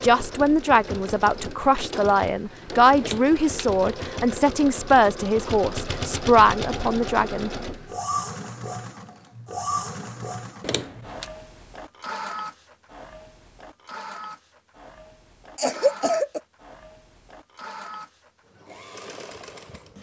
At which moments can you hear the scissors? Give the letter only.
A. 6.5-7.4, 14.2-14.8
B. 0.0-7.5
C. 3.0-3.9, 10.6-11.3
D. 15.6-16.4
C.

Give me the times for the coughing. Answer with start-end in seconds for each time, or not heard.
15.6-16.4.